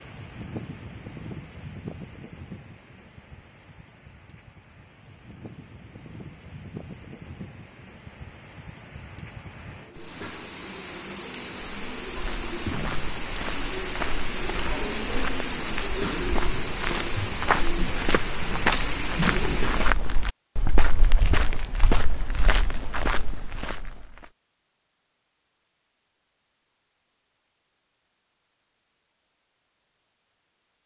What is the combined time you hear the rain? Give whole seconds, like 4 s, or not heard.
20 s.